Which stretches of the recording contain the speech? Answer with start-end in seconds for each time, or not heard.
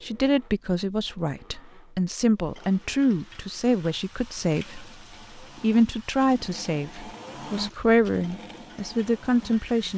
0.0-9.9.